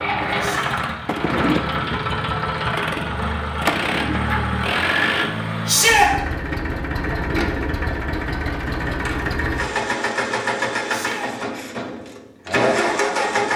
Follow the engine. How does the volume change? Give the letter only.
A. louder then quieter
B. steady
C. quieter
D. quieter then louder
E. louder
B.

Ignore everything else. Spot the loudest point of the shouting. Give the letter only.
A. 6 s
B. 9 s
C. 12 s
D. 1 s
A.